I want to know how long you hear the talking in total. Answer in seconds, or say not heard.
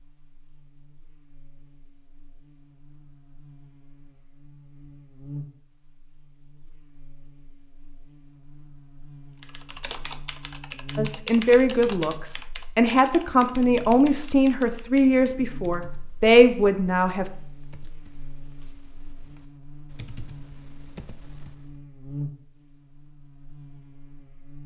6 s.